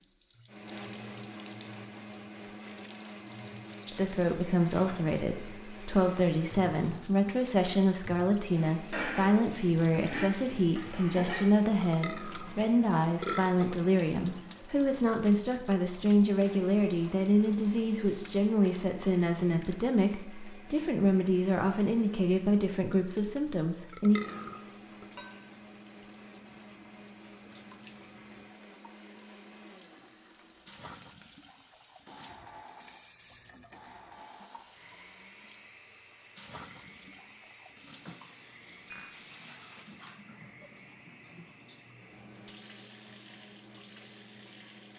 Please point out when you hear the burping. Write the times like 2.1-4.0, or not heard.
11.8-13.7, 23.9-25.1.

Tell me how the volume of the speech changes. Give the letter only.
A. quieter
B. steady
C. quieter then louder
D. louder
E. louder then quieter
B.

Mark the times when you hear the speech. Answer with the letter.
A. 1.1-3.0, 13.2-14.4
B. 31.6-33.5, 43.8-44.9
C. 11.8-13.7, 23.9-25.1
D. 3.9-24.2
D.